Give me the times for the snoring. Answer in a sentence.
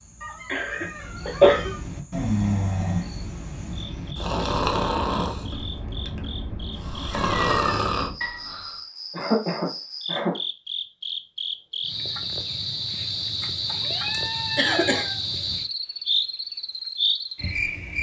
You can hear the snoring from 0.8 to 8.8 s.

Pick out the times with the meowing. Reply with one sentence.
The meowing can be heard from 0.2 to 1.8 s, from 6.7 to 7.7 s and from 13.7 to 15.2 s.